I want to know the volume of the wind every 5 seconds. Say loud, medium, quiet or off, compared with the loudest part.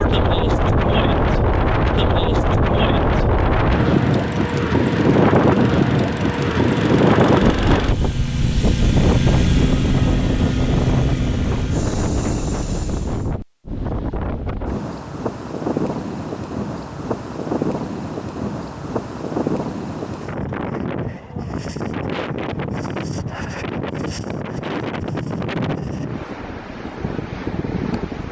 loud, loud, medium, medium, medium, medium.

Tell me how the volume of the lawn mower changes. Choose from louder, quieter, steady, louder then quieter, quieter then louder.
louder then quieter.